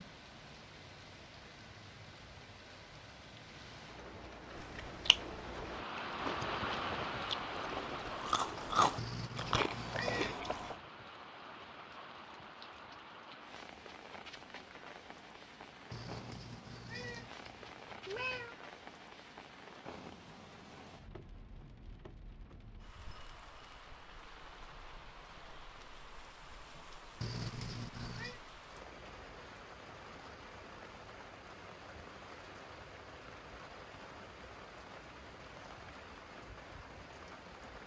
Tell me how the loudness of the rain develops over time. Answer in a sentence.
The volume of the rain goes down.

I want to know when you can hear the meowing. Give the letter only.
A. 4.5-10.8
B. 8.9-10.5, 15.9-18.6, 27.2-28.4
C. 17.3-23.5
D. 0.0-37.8
B.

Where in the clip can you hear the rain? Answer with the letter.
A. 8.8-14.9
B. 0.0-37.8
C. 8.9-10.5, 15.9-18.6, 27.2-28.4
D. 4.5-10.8
B.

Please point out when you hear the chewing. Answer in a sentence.
You can hear the chewing from 4.5 to 10.8 s.